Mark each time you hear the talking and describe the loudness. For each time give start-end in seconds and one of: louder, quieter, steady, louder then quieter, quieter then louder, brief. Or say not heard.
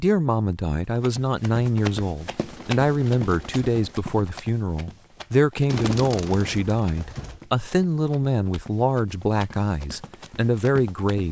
0.0-11.2 steady.